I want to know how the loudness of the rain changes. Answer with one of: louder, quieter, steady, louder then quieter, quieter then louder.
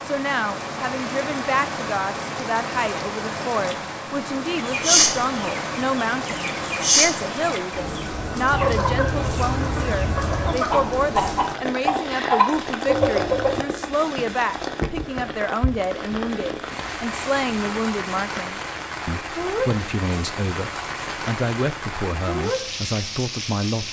steady.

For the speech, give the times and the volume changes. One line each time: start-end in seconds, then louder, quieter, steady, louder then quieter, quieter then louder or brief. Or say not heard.
0.0-23.8 steady.